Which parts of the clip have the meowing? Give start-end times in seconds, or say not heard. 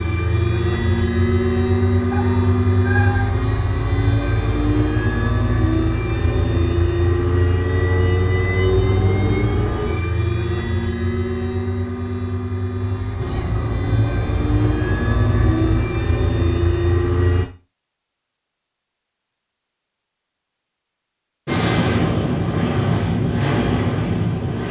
2.1-3.4, 13.2-15.8.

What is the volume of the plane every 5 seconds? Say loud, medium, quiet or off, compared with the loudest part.
loud, loud, medium, loud, loud.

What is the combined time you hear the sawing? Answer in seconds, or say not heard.
not heard.